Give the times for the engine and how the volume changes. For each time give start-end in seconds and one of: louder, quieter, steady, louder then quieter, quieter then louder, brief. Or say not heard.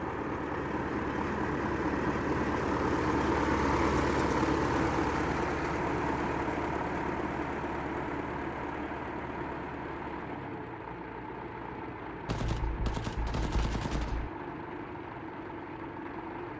0.0-16.5 quieter.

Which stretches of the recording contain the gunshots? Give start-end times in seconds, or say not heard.
12.2-14.3.